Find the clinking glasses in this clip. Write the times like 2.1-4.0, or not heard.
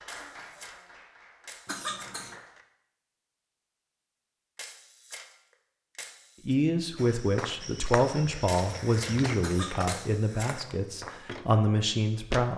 not heard.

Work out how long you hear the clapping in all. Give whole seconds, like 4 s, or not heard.
3 s.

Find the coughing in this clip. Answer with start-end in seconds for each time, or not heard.
1.6-2.4, 9.4-9.9.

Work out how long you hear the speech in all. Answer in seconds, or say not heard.
6 s.